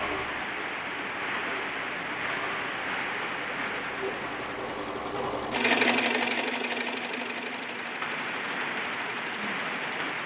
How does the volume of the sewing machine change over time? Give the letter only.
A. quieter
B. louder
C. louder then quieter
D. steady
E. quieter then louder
C.